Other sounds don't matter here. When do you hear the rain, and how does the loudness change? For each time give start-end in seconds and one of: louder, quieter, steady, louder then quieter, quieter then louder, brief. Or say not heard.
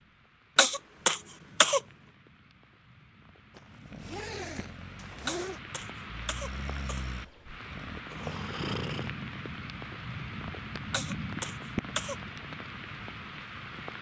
0.0-13.9 louder.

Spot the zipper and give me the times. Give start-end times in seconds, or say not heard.
3.5-5.6.